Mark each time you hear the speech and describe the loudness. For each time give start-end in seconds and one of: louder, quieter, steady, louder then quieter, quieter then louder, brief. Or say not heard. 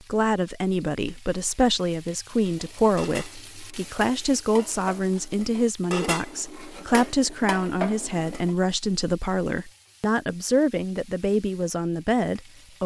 0.1-12.8 steady.